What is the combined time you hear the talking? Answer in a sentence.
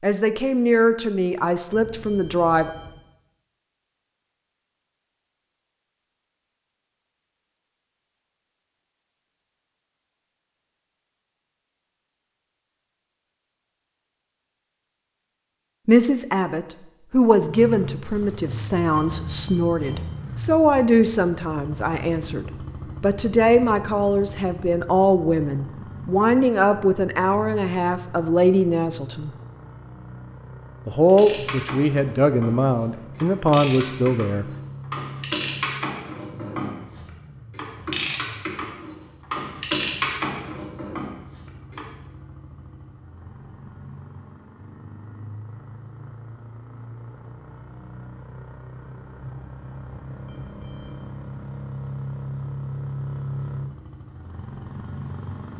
You can hear the talking for 20 seconds altogether.